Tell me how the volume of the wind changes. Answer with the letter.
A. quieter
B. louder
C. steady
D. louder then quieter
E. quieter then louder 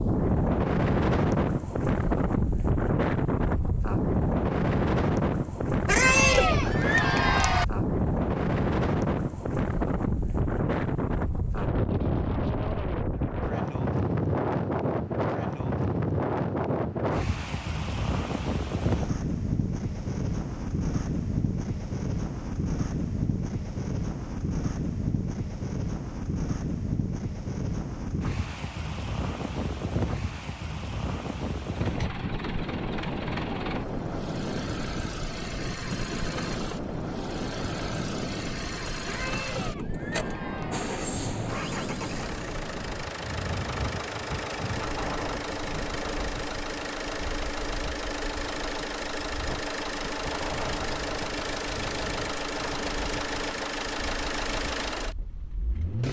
A.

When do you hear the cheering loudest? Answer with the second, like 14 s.
6 s.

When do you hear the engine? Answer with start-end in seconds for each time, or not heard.
31.6-56.0.